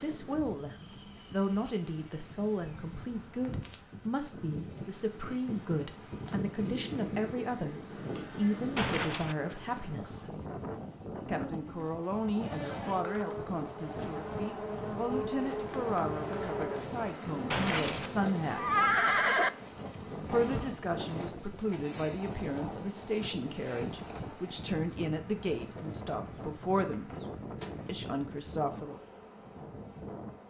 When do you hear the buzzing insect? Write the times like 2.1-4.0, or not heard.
0.0-30.4.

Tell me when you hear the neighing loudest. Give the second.
19 s.